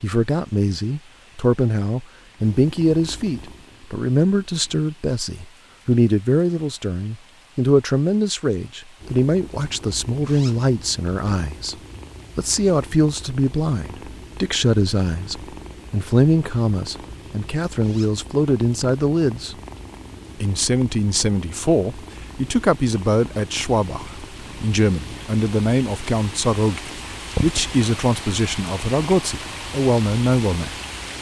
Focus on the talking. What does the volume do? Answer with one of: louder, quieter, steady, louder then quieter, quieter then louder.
steady.